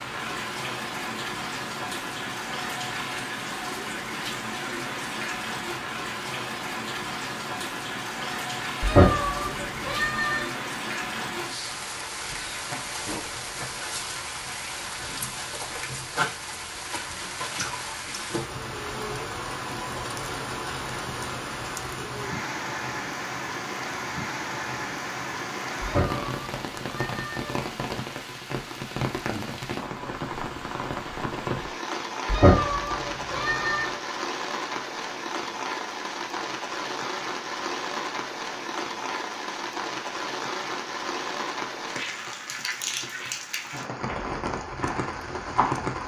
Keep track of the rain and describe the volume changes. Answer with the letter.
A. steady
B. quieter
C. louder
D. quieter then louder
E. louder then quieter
A.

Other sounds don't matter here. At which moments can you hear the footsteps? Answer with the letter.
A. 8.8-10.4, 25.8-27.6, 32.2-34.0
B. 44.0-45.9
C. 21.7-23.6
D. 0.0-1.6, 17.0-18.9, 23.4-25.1
B.